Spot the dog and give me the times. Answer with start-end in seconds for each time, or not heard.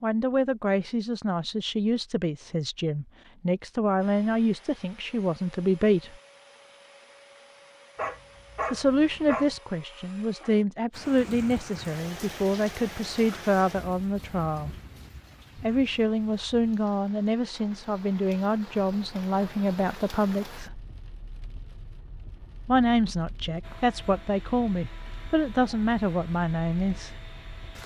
8.0-9.6.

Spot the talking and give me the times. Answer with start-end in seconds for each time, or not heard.
0.0-6.2, 8.7-14.8, 15.6-20.8, 22.6-27.1.